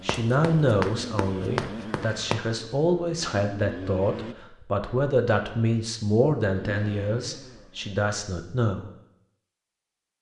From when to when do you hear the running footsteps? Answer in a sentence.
You can hear the running footsteps from 0.1 to 2.4 s.